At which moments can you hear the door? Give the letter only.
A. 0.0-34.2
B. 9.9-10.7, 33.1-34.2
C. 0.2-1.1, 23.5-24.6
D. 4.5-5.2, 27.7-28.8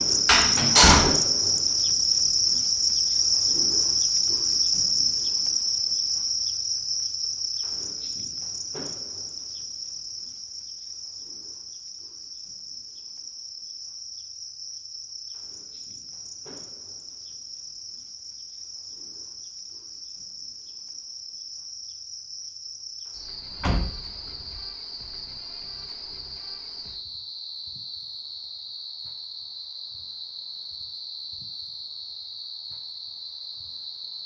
C.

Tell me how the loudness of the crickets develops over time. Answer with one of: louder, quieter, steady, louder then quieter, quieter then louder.
quieter.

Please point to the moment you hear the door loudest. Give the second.
1 s.